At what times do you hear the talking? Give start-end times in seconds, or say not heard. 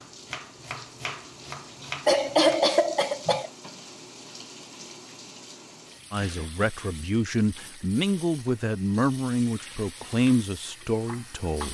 6.1-11.7.